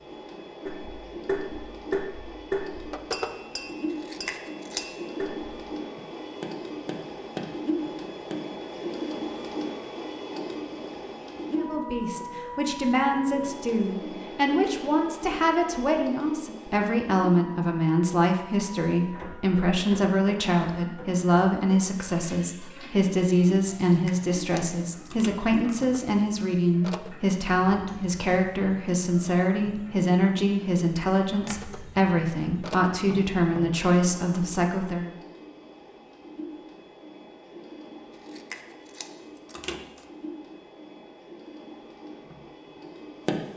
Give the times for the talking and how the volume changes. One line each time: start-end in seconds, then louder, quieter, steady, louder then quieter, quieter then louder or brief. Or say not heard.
11.6-35.1 steady.